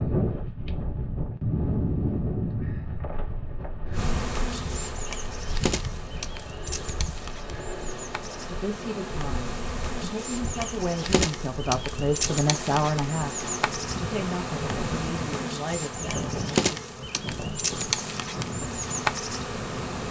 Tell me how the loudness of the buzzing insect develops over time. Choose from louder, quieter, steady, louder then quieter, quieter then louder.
louder.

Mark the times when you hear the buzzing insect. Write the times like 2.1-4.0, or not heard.
4.0-20.0.